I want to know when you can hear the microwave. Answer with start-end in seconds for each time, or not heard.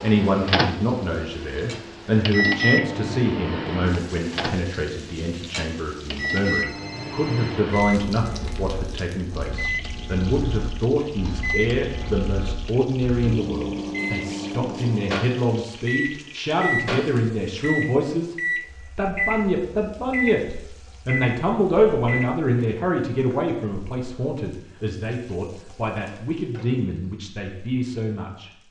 0.0-22.3.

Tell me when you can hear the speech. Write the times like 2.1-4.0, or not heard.
0.0-18.4, 18.9-28.5.